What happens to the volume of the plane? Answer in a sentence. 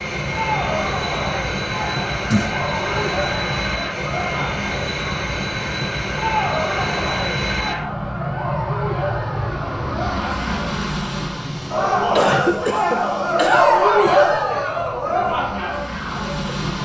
The loudness of the plane goes down.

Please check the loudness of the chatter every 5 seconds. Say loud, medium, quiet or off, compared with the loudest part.
medium, medium, loud, medium.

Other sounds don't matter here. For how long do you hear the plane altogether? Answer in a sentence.
You can hear the plane for 17 seconds altogether.